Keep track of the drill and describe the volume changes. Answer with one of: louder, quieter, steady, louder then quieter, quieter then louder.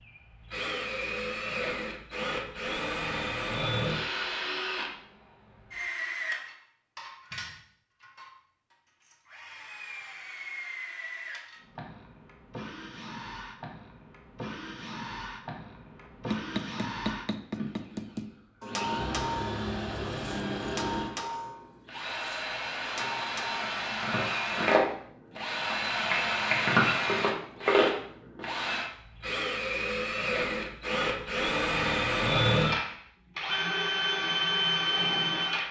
quieter then louder.